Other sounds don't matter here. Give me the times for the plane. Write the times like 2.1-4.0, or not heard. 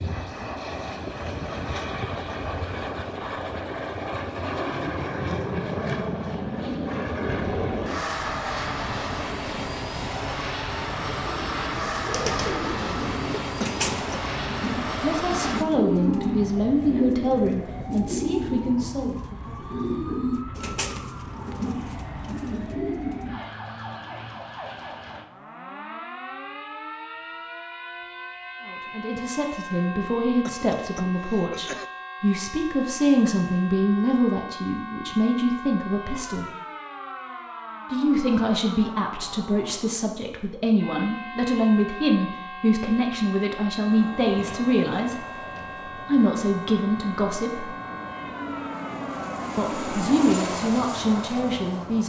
0.0-15.7, 43.9-52.0.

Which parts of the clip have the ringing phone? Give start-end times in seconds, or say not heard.
not heard.